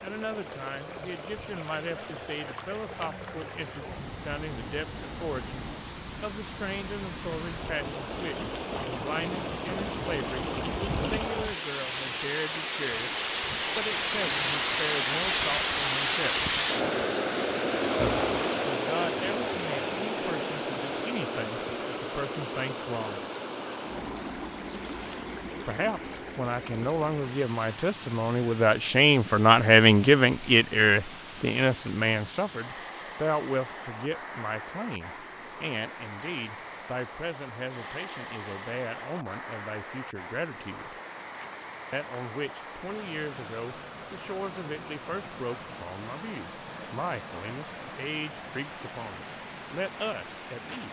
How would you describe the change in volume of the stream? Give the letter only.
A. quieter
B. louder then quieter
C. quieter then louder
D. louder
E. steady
B.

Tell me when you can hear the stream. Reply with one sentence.
You can hear the stream from 0.0 to 50.8 s.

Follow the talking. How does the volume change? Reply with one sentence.
The loudness of the talking goes up, then down.